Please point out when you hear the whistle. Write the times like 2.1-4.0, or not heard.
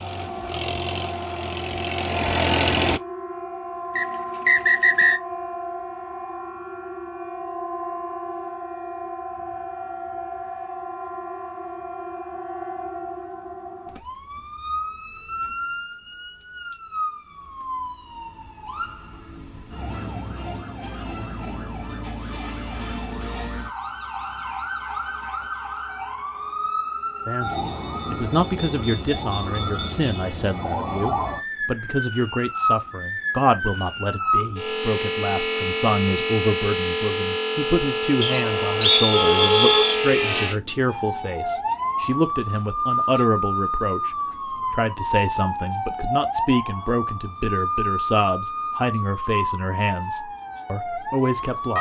4.0-5.2, 38.2-40.0.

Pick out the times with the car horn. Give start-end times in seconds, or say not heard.
38.2-40.0.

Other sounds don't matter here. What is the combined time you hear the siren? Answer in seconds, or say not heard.
52 s.